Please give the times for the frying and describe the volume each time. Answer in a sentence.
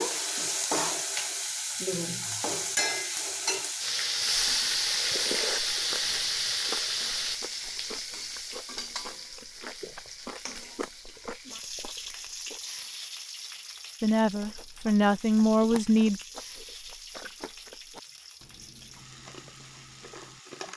You can hear the frying from 0.0 to 20.7 s, getting quieter.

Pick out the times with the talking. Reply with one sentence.
You can hear the talking from 14.0 to 16.2 s.